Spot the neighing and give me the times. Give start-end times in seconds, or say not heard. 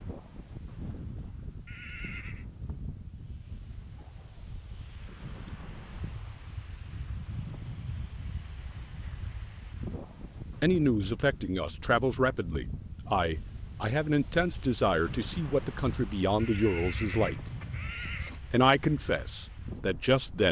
1.6-2.5, 16.4-18.4.